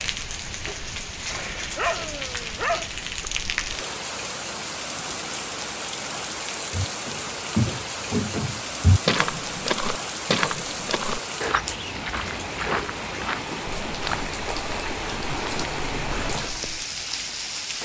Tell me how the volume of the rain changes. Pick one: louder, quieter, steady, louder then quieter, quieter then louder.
steady.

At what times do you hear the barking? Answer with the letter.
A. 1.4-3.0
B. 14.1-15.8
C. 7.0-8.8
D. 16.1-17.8
A.